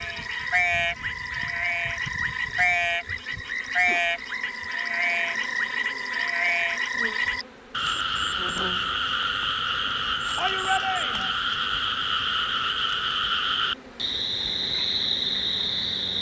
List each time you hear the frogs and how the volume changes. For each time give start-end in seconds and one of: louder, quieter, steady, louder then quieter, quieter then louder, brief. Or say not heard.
0.0-16.1 steady.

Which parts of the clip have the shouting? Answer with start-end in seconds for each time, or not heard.
10.3-11.3.